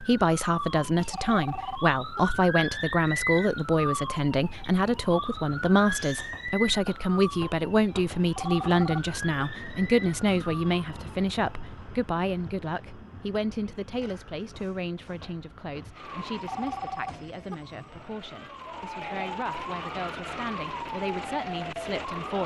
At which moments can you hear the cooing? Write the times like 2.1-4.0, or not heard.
not heard.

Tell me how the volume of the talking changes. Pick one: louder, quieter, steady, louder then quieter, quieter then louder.
quieter.